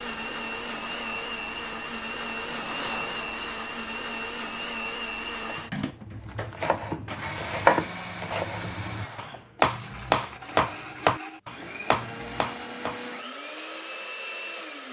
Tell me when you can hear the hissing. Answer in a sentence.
You can hear the hissing from 0.0 to 4.8 s.